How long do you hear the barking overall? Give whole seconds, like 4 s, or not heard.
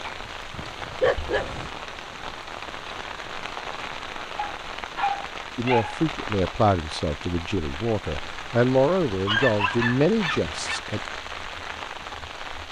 5 s.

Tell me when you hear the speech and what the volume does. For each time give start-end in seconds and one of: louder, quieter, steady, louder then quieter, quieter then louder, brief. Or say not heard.
5.5-11.0 quieter then louder.